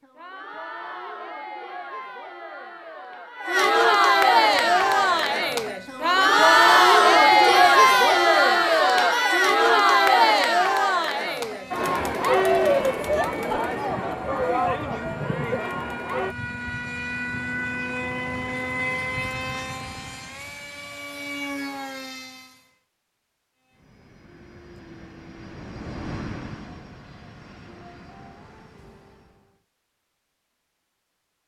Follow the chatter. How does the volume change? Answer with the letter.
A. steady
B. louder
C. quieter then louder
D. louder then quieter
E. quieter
D.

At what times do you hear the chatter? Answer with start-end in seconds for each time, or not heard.
0.0-16.4.